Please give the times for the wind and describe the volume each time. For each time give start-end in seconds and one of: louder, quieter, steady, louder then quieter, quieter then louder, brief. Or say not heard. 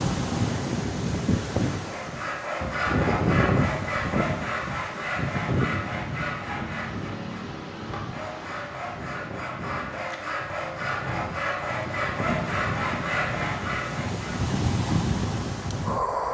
0.0-16.2 quieter then louder.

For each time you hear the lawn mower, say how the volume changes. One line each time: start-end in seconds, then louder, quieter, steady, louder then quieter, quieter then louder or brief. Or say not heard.
not heard.